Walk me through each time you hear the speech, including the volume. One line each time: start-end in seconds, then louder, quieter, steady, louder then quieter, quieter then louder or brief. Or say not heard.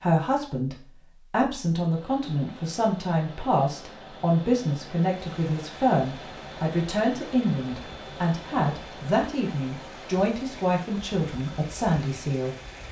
0.0-12.6 steady.